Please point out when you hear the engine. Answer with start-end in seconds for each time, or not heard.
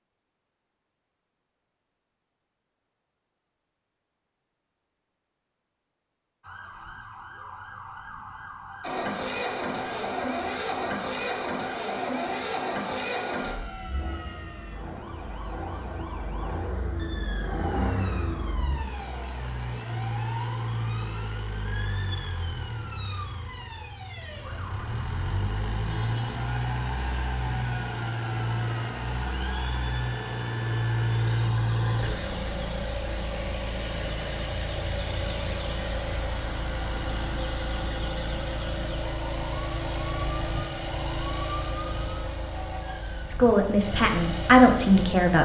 8.8-45.4.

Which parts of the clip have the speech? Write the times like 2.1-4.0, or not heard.
43.2-45.4.